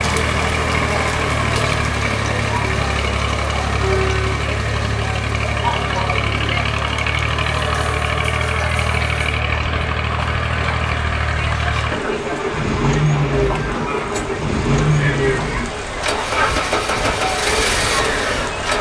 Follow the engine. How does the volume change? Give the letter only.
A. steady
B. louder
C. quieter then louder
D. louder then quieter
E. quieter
A.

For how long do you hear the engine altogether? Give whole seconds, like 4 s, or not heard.
19 s.